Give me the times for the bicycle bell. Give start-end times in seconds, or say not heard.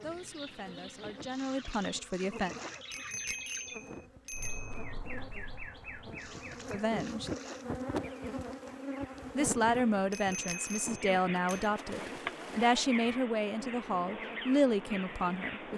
2.9-4.9, 10.1-11.7.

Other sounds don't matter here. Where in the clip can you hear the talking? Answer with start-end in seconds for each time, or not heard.
0.0-2.5, 6.7-7.3, 9.3-15.7.